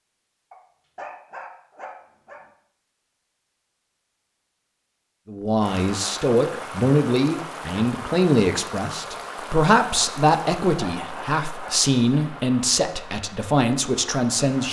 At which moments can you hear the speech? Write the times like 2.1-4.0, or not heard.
5.2-14.6.